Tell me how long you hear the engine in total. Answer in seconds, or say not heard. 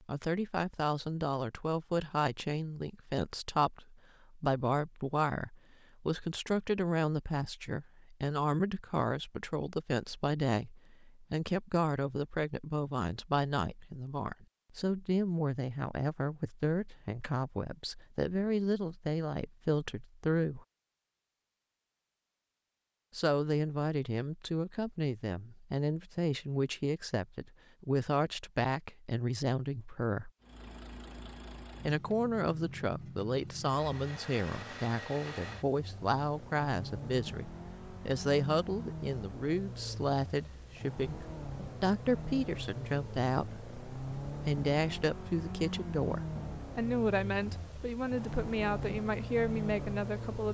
20 s.